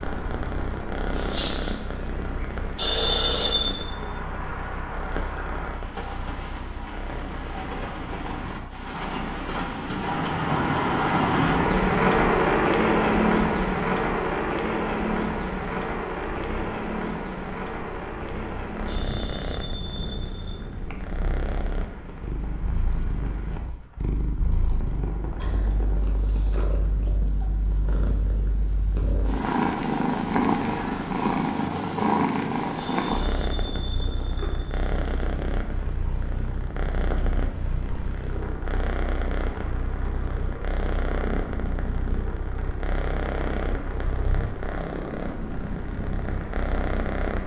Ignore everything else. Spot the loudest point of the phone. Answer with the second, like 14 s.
3 s.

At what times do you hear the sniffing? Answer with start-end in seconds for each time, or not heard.
1.1-1.8.